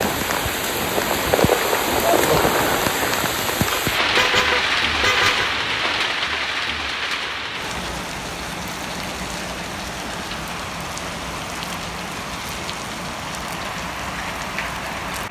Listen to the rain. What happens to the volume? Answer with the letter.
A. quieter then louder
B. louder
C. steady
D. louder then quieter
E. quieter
E.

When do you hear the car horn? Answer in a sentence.
You can hear the car horn from 3.7 to 5.5 s.